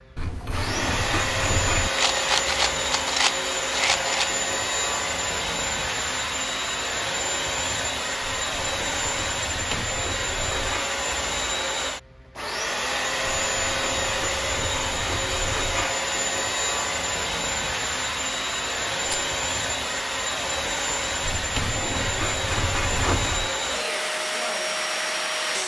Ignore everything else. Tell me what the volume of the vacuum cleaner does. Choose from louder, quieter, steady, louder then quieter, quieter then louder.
steady.